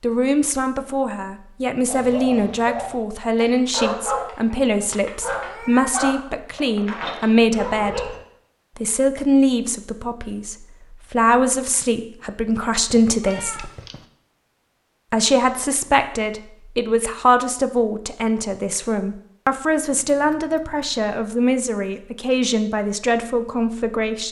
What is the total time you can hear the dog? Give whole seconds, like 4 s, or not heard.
6 s.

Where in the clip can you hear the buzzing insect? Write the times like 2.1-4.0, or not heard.
not heard.